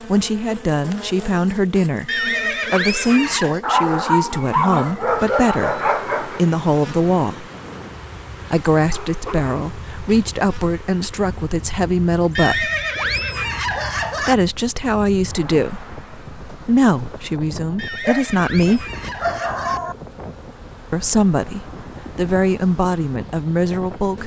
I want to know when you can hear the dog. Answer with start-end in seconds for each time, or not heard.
3.6-6.5, 8.9-10.4, 18.0-19.9.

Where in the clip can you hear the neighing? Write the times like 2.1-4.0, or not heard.
2.0-3.6, 12.3-14.3, 17.8-19.8.